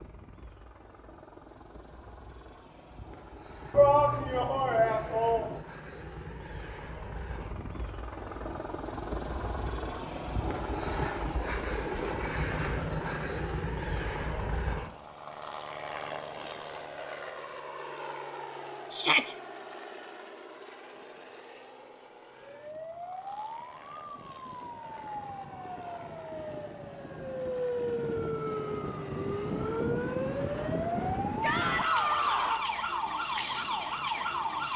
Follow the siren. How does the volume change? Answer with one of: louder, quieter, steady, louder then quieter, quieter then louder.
louder.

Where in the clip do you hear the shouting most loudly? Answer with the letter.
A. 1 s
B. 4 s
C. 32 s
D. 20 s
B.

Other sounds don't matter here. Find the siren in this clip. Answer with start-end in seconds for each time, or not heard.
22.3-34.7.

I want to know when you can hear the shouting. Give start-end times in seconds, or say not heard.
3.8-5.5, 18.9-19.4, 31.4-32.6.